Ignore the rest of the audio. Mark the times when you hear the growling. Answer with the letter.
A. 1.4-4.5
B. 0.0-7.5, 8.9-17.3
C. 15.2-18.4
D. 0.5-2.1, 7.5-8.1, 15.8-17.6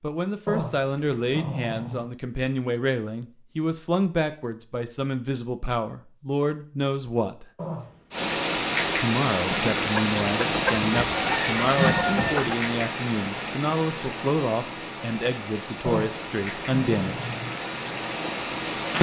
D.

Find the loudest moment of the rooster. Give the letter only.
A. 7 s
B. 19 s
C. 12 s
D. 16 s
C.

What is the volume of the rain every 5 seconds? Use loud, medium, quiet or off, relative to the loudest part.
off, loud, loud, medium.